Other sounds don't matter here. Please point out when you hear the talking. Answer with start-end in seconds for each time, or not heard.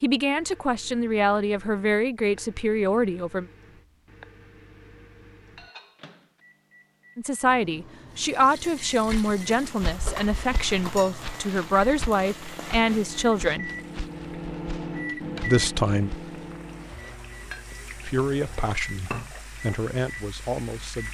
0.0-3.5, 7.2-13.7, 15.4-16.1, 18.0-21.0.